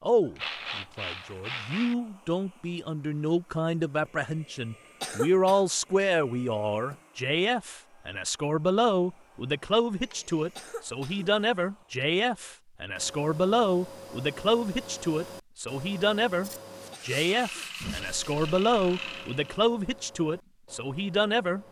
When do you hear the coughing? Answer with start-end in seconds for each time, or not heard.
5.0-5.6, 10.6-11.3, 16.9-17.6.